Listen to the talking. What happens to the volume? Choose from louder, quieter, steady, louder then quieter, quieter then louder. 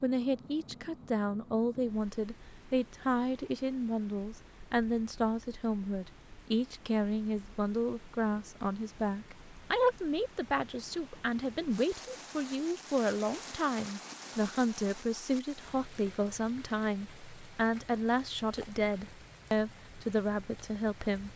steady.